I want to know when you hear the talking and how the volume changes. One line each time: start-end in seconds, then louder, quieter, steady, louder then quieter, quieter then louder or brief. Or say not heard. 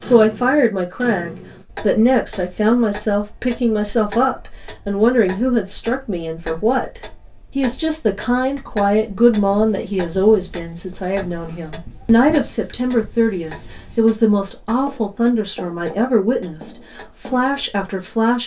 0.0-18.4 steady.